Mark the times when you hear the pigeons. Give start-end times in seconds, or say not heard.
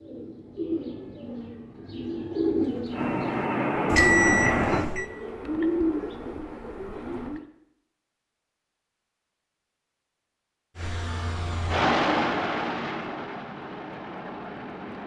0.0-7.5.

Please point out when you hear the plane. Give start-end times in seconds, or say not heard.
2.9-4.8, 10.8-15.0.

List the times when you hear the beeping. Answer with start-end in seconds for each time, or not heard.
3.9-5.1.